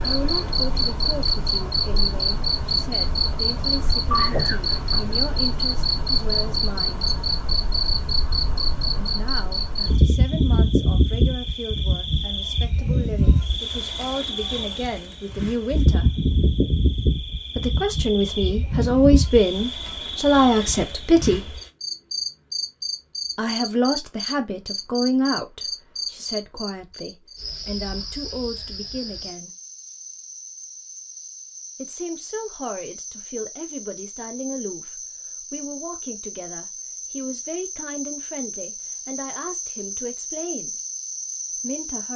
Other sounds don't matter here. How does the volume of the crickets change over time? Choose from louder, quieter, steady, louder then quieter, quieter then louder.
quieter.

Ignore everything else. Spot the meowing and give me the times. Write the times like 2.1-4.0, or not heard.
4.1-5.0.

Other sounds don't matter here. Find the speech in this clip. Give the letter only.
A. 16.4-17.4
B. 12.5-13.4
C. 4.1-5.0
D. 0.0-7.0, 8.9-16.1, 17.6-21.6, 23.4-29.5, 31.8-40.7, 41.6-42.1
D.